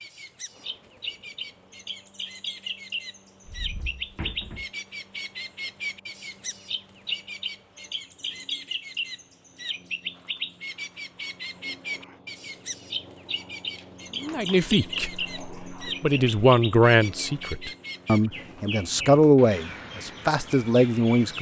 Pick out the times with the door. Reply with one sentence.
The door can be heard from 3.5 to 4.7 s.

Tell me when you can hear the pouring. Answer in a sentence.
You can't hear the pouring here.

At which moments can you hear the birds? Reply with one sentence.
The birds can be heard from 0.0 to 21.3 s.